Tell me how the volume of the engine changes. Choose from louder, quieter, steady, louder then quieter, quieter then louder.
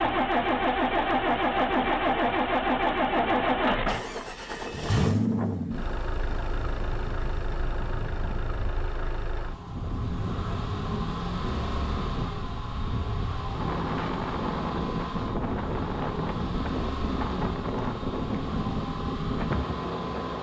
quieter.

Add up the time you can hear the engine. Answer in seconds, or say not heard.
20 s.